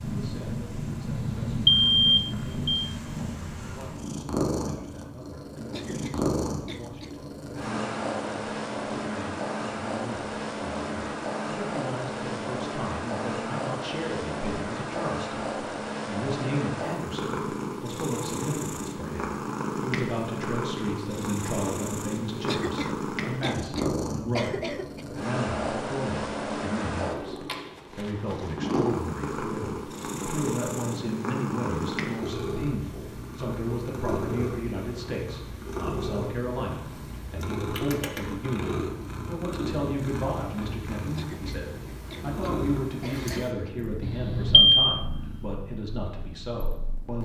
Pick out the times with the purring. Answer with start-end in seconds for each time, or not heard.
0.0-47.2.